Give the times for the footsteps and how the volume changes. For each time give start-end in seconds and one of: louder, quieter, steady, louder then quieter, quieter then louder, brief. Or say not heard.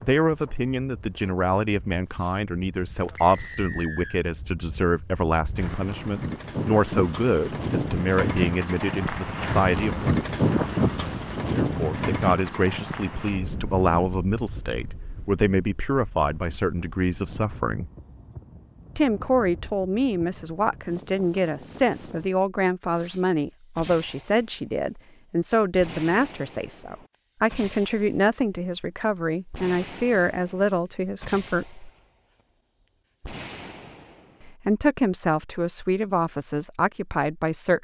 not heard.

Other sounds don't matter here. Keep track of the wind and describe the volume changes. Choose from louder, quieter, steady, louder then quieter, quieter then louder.
louder then quieter.